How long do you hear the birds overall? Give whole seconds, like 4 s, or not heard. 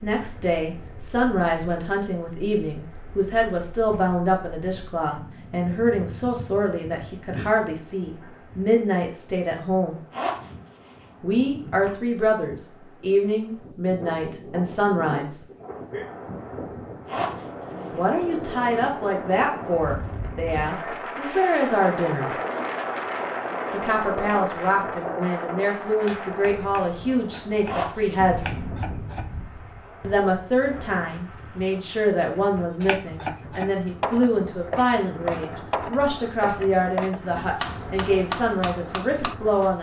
not heard.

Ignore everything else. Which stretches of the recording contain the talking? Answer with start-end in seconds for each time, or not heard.
0.0-9.9, 11.2-15.4, 17.9-22.3, 23.7-28.6, 30.0-39.7.